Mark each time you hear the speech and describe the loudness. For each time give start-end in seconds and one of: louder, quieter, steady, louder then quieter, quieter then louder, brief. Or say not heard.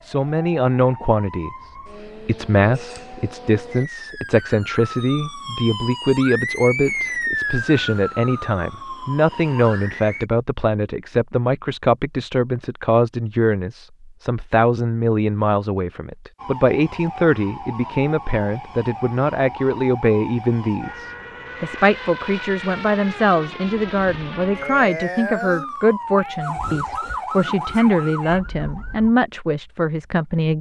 0.0-1.5 brief
2.2-30.5 steady.